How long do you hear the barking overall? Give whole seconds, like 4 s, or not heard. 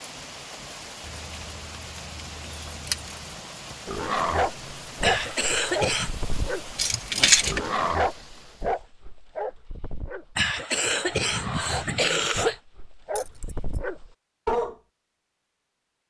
11 s.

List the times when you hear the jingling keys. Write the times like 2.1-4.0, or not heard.
1.0-3.1, 6.8-7.7, 13.2-13.8.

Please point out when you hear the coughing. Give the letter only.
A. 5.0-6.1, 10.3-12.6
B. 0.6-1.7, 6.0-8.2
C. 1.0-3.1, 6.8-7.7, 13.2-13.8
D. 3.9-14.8
A.